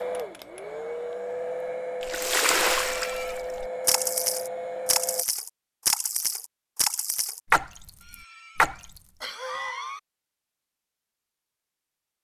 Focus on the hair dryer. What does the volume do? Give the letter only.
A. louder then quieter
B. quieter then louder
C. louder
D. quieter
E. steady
E.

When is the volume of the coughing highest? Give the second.
10 s.